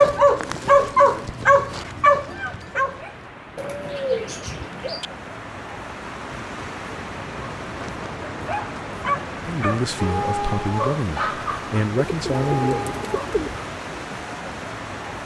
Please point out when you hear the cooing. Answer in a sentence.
The cooing can be heard from 3.5 to 5.0 s and from 12.0 to 13.6 s.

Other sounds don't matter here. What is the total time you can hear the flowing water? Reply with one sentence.
The flowing water can be heard for 15 seconds in total.